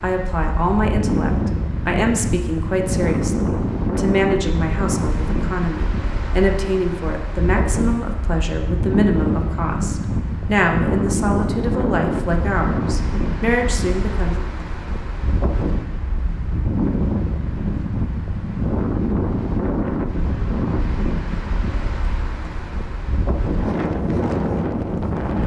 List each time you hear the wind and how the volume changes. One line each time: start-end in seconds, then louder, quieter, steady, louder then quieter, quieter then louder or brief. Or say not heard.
0.0-25.4 steady.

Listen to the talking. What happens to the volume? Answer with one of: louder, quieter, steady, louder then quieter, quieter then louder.
steady.